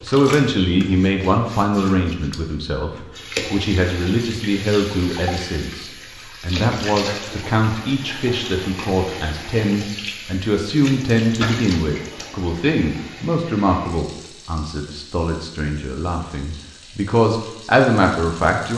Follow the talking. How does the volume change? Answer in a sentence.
The volume of the talking stays about the same.